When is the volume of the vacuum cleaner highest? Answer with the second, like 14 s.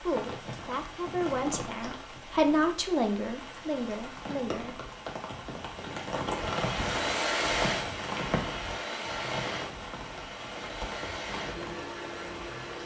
7 s.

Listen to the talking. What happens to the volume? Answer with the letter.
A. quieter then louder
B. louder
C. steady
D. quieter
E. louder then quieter
E.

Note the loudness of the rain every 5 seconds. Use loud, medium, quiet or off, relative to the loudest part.
medium, loud, medium.